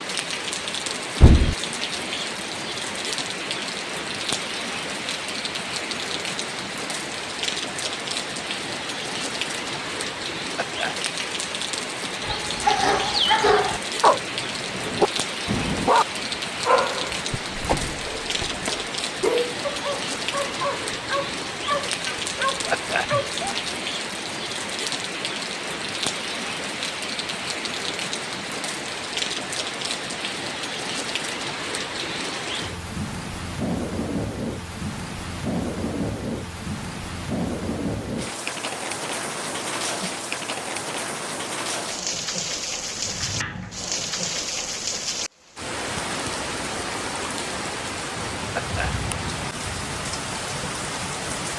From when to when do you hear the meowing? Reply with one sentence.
The meowing can't be heard in this clip.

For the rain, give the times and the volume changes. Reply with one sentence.
The rain can be heard from 0.0 to 51.5 s, at a steady volume.